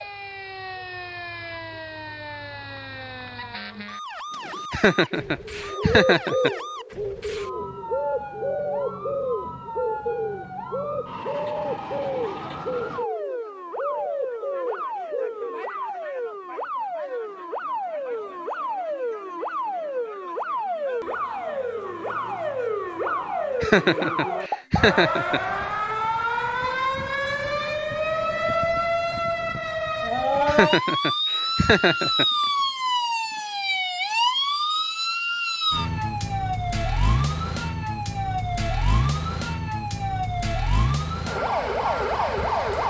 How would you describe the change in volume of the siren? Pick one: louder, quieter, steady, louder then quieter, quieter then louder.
louder.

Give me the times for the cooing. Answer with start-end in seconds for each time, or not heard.
4.3-15.7.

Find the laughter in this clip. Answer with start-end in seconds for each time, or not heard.
4.7-6.5, 23.6-25.4, 30.4-32.2.